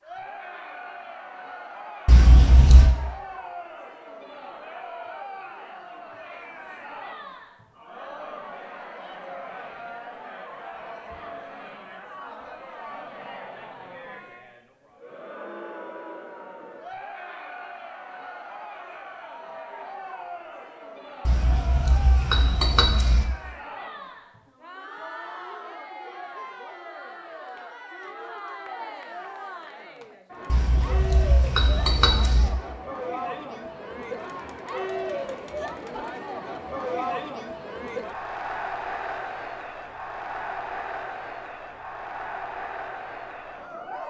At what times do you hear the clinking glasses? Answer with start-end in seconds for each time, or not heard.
2.0-2.9, 21.2-23.2, 30.5-32.5.